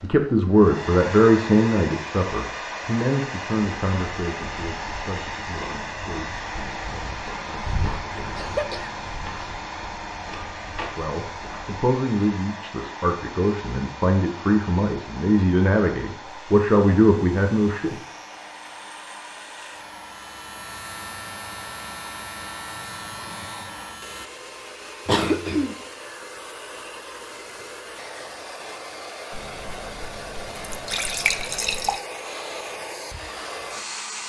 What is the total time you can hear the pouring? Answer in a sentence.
The pouring can be heard for 3 seconds in total.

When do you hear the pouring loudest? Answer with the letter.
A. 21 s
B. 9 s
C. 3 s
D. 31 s
D.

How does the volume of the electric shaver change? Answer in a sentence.
The loudness of the electric shaver goes up.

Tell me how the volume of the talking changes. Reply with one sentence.
The loudness of the talking goes down, then up.